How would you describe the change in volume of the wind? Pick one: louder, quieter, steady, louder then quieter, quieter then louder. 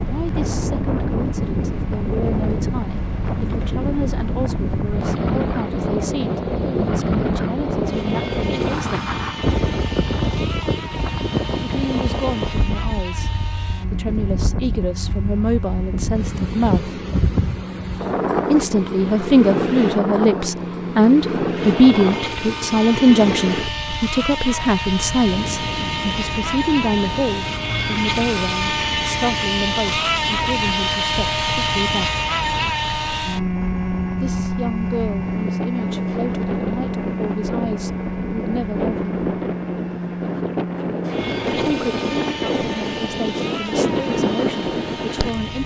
quieter then louder.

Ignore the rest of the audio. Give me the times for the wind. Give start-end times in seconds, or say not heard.
0.0-45.6.